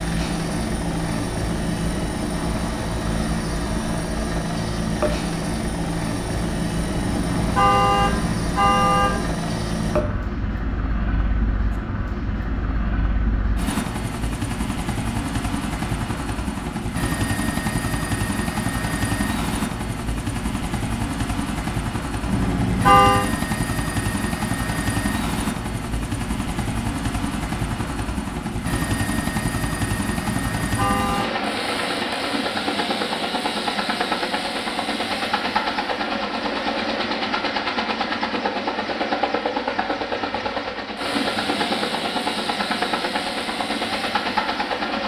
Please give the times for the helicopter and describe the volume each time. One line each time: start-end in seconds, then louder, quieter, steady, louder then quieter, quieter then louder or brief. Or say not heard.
0.0-45.0 steady.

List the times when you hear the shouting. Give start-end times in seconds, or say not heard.
not heard.